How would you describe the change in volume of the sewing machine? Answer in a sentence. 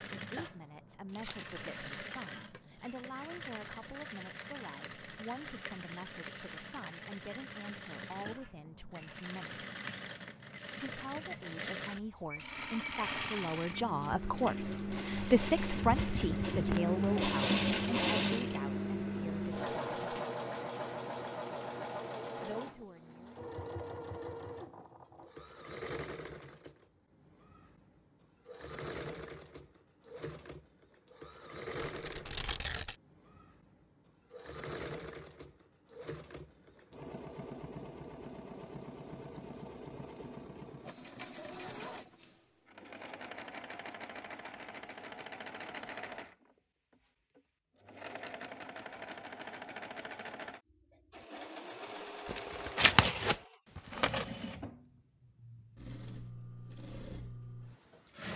The volume of the sewing machine goes up, then down.